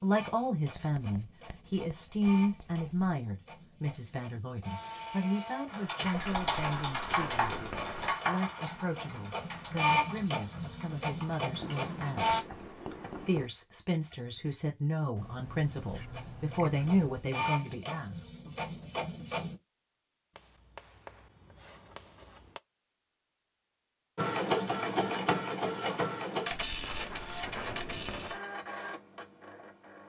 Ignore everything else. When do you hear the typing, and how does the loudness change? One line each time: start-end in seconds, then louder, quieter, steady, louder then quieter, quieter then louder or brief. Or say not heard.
5.7-14.2 quieter.